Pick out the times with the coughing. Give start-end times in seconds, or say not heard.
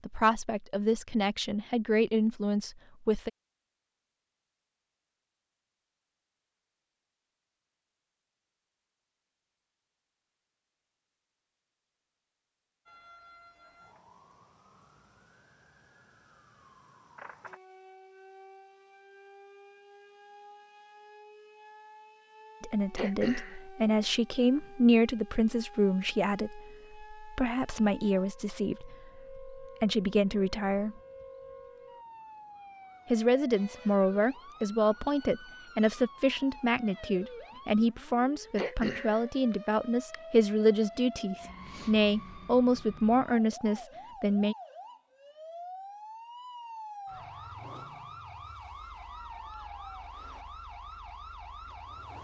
22.9-23.6, 38.5-40.1.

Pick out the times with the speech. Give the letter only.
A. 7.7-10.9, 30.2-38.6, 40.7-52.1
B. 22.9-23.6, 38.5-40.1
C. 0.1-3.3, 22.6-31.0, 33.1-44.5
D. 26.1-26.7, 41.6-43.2
C.